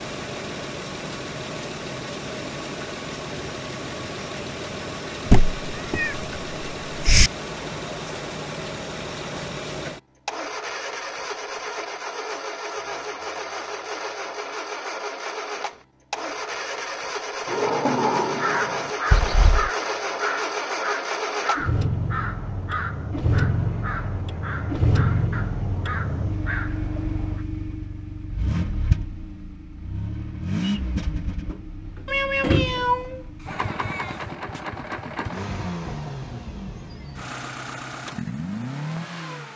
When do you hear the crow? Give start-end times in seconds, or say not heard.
18.3-27.4.